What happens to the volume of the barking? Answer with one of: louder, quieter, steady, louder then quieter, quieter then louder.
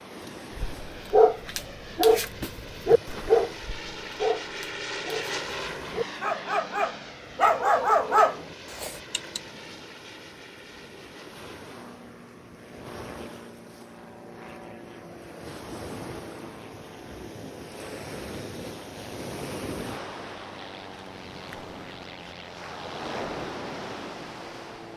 quieter then louder.